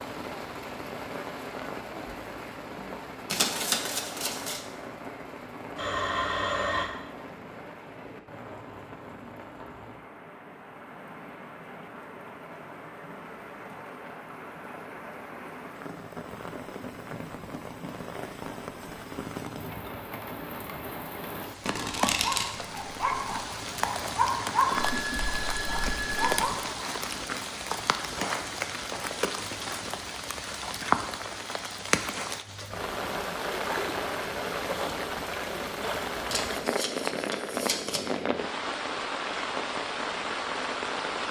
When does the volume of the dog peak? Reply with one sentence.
The volume of the dog peaks at 25 seconds.